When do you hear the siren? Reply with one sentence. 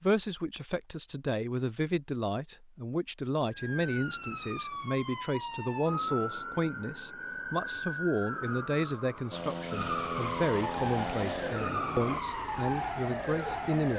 You can hear the siren from 3.5 to 13.9 s.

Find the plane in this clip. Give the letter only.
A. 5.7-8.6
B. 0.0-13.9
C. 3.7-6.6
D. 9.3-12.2
D.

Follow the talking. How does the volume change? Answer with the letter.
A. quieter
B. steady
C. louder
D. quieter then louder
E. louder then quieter
B.